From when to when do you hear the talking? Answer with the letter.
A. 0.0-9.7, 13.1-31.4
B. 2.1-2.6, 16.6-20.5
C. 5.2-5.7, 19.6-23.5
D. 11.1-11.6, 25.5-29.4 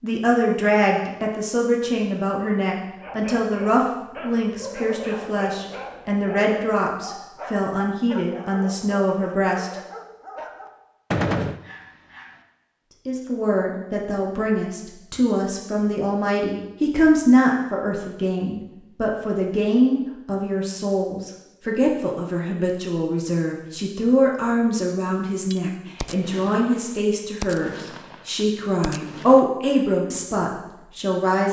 A.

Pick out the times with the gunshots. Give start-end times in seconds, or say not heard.
11.1-11.6, 25.5-29.4.